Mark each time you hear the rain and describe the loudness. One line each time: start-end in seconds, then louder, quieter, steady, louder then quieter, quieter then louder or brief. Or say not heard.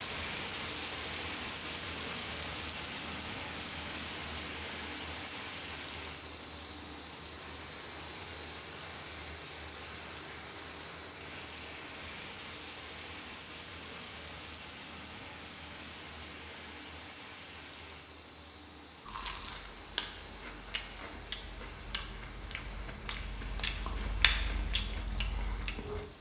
0.0-26.1 quieter.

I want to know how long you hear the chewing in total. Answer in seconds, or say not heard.
7 s.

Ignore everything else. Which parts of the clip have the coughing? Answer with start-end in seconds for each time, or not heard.
not heard.